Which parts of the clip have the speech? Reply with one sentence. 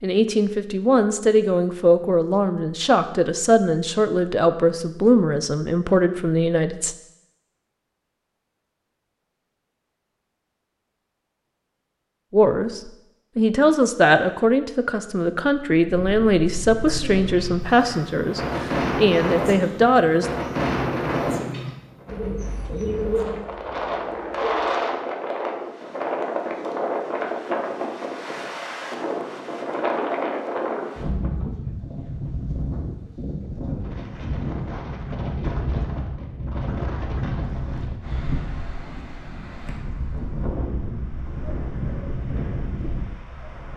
You can hear the speech from 0.0 to 7.0 s and from 12.3 to 20.3 s.